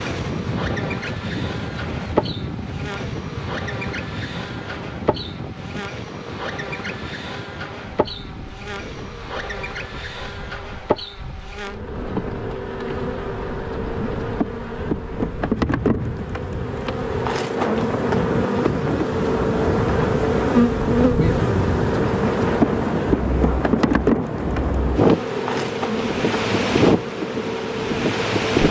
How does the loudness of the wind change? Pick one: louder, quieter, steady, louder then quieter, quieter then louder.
quieter then louder.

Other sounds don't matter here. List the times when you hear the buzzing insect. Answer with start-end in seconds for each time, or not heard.
0.0-28.6.